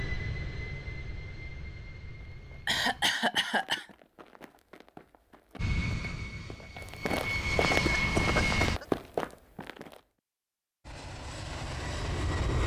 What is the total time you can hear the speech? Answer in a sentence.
The speech can't be heard in this clip.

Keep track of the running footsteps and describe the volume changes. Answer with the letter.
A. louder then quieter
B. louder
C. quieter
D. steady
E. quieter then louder
B.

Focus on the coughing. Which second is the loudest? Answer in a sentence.
The volume of the coughing peaks at 3 seconds.